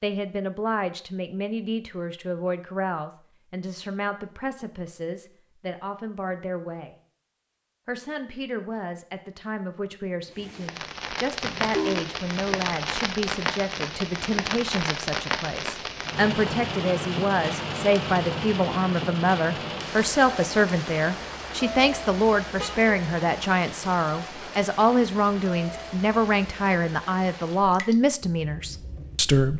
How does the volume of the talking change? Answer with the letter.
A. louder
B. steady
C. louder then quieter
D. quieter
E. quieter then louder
A.